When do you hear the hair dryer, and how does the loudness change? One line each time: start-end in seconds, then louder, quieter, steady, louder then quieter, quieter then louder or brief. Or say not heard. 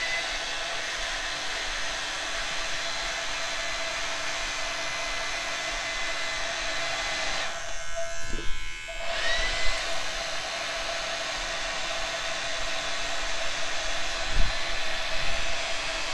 0.0-16.1 steady.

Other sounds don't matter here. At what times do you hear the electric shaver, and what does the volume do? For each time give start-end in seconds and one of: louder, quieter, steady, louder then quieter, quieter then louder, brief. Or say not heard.
0.0-16.1 steady.